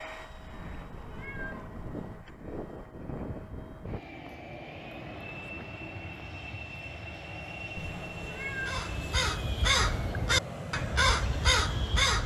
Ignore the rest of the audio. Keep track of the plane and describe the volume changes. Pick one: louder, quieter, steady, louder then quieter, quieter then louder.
steady.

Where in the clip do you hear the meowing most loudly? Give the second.
9 s.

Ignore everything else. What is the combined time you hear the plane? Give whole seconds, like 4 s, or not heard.
12 s.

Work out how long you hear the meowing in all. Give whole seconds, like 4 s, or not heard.
3 s.